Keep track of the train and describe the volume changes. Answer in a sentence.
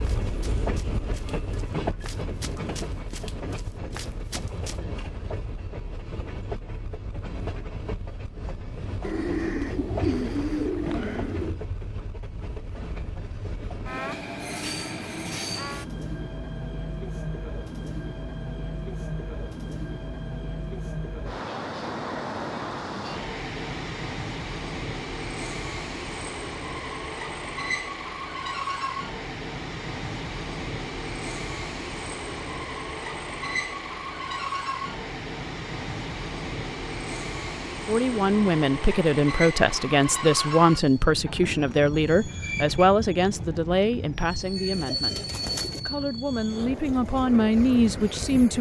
The loudness of the train stays about the same.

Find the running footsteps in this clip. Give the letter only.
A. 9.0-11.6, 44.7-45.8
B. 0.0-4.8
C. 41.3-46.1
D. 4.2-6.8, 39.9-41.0
B.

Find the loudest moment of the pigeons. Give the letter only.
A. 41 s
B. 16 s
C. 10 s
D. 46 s
C.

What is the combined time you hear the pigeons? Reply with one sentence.
You can hear the pigeons for 4 seconds altogether.